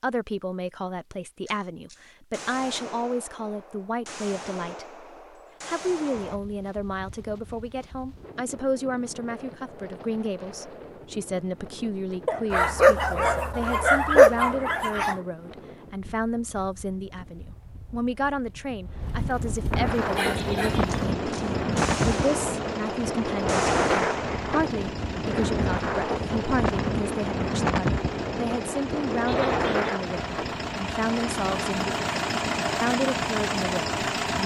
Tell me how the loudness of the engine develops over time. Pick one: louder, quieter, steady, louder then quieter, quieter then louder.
louder.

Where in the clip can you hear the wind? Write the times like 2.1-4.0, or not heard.
6.2-34.4.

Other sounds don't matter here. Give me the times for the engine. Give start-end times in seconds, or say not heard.
19.9-34.4.